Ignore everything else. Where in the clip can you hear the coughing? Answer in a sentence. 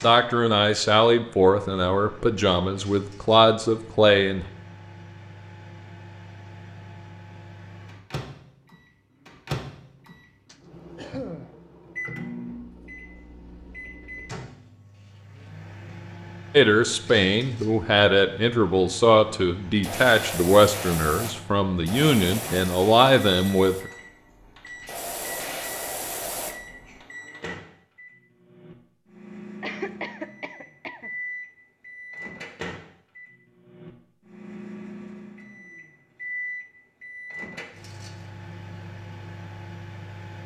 You can hear the coughing from 10.4 to 11.5 s and from 29.6 to 31.1 s.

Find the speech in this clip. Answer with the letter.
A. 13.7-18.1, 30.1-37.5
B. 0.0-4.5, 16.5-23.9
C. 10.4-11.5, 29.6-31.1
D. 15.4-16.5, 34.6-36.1
B.